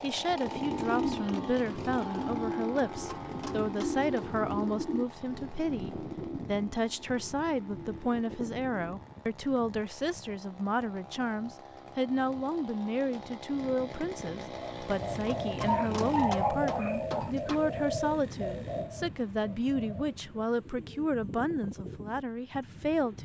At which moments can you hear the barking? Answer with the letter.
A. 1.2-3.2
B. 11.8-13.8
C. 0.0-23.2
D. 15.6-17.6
D.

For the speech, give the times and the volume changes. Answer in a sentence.
You can hear the speech from 0.0 to 23.2 s, at a steady volume.